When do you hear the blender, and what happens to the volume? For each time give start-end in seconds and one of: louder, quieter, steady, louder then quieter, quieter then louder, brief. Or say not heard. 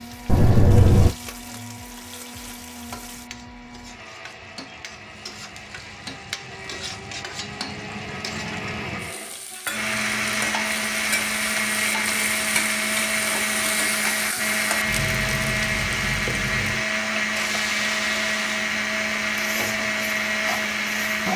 0.0-21.3 louder.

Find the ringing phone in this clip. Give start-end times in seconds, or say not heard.
0.2-1.1.